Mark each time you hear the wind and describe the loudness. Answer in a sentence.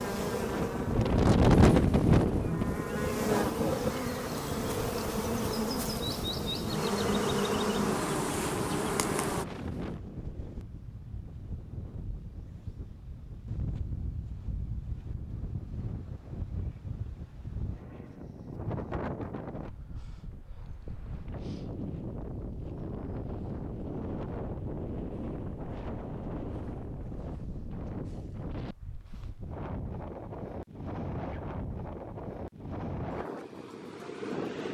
The wind can be heard from 0.0 to 34.6 s, getting quieter.